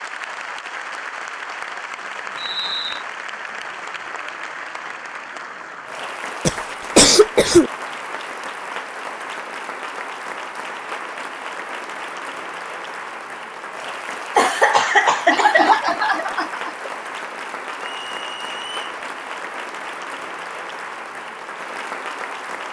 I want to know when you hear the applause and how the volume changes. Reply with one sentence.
The applause can be heard from 0.0 to 22.6 s, at a steady volume.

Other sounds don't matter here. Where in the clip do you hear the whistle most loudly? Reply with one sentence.
The loudest moment of the whistle is at 3 seconds.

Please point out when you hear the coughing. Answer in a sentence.
You can hear the coughing from 6.5 to 7.7 s and from 14.3 to 16.9 s.